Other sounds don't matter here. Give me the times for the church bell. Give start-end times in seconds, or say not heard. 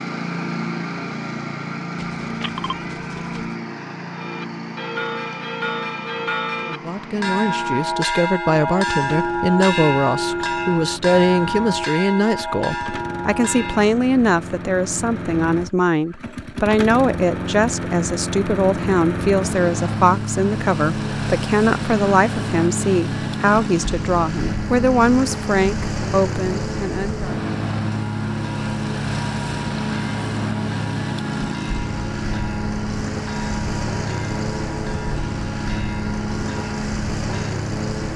4.1-13.9, 27.9-37.4.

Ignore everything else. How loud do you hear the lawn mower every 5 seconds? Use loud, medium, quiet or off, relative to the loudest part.
loud, medium, medium, loud, loud, loud, loud, loud.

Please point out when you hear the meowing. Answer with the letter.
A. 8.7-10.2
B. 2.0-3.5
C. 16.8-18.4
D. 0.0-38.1
B.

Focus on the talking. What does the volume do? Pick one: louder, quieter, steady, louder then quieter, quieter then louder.
steady.